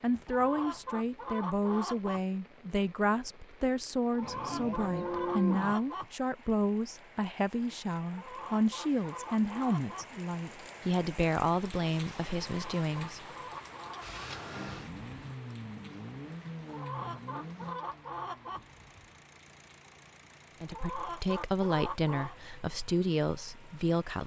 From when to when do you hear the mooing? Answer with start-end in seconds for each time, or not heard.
4.2-5.8.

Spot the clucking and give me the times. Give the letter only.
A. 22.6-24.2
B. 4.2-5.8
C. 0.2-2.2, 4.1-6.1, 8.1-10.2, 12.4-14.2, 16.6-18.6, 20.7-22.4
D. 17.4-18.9
C.